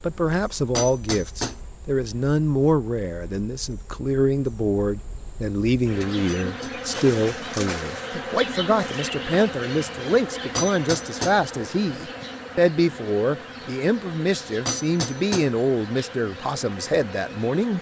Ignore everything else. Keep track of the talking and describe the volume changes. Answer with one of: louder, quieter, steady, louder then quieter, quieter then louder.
steady.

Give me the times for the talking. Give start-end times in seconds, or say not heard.
0.0-17.7.